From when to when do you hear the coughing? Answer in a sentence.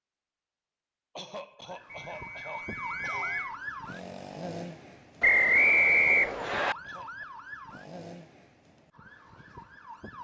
The coughing can be heard from 1.1 to 3.5 s and from 6.7 to 7.2 s.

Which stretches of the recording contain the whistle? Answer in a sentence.
You can hear the whistle from 1.9 to 3.5 s and from 5.2 to 6.8 s.